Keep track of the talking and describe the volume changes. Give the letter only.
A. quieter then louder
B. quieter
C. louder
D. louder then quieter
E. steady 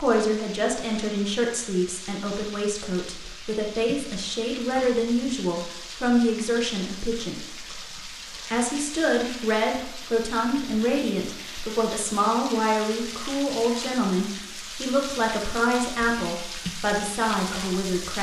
E.